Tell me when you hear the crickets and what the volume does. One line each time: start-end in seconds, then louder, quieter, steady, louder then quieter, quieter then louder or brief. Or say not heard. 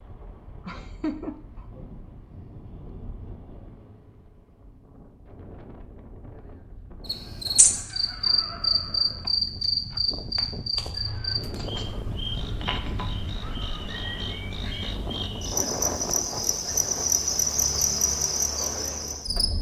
7.0-19.5 quieter then louder.